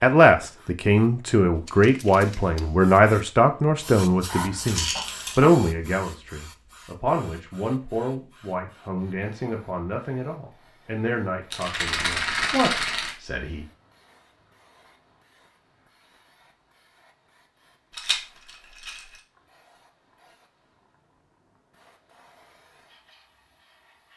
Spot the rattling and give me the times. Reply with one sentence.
You can hear the rattling from 4.7 to 5.4 s, from 11.5 to 13.2 s and from 17.9 to 19.2 s.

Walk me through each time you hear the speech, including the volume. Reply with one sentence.
The speech can be heard from 0.0 to 13.7 s, getting quieter.